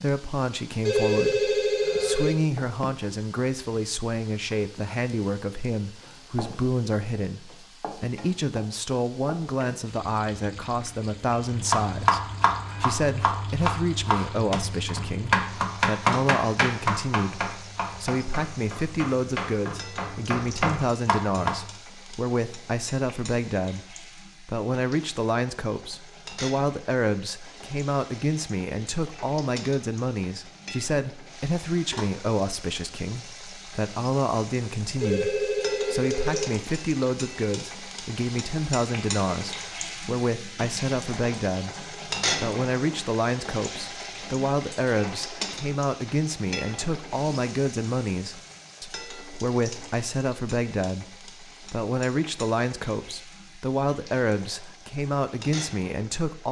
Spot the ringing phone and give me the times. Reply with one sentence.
You can hear the ringing phone from 0.8 to 2.4 s and from 35.0 to 36.5 s.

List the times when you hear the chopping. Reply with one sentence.
The chopping can be heard from 11.4 to 21.7 s.